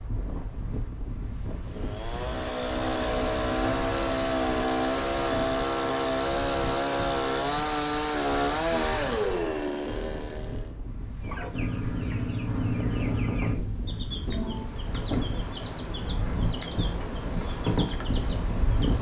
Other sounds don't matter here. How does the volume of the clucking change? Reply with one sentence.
The volume of the clucking goes down, then up.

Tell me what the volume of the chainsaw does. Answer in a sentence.
The volume of the chainsaw stays about the same.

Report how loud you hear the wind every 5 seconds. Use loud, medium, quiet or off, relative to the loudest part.
medium, medium, medium, loud.